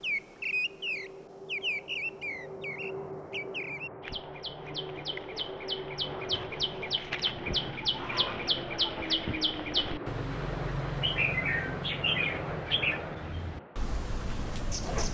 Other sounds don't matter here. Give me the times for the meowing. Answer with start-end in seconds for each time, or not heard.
not heard.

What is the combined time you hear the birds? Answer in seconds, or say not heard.
15 s.